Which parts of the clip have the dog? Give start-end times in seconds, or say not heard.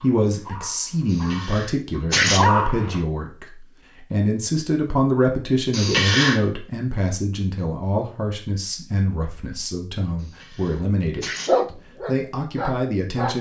0.0-3.0, 11.4-13.3.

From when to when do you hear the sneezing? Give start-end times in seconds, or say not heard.
1.1-2.5, 5.7-6.5, 10.2-11.6.